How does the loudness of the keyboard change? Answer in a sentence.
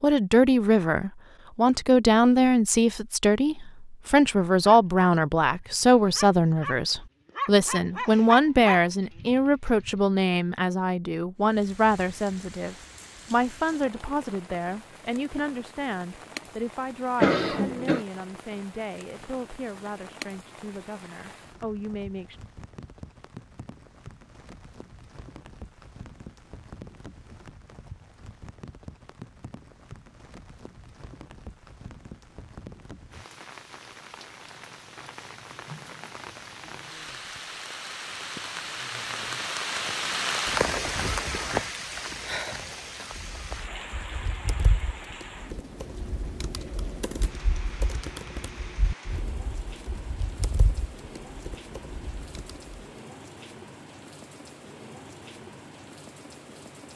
The loudness of the keyboard stays about the same.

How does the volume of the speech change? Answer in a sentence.
The loudness of the speech goes down.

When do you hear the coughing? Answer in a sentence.
The coughing can be heard from 17.2 to 18.1 s.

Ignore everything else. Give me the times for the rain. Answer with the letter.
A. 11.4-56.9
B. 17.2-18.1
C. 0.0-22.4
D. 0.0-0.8
A.